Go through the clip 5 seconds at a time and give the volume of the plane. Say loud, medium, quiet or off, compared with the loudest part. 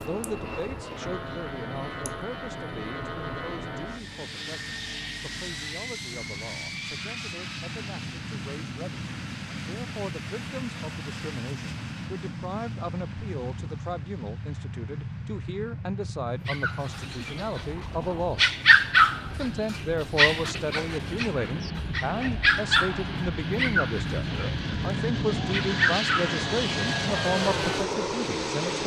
medium, medium, medium, medium, medium, loud.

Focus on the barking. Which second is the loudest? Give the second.
19 s.